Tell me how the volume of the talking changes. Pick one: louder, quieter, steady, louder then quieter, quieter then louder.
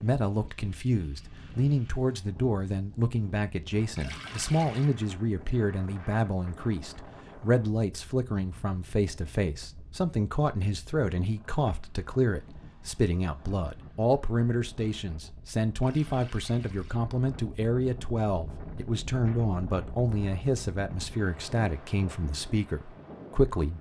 steady.